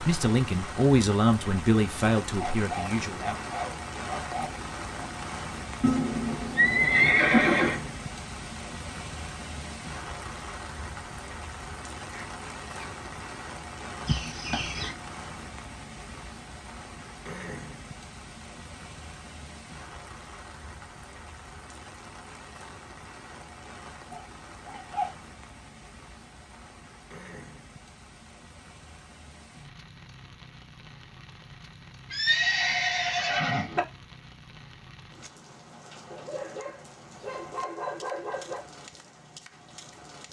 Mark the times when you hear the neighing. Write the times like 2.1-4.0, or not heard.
5.8-7.8, 14.1-14.9, 32.1-33.8.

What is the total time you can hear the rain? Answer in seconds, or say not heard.
40 s.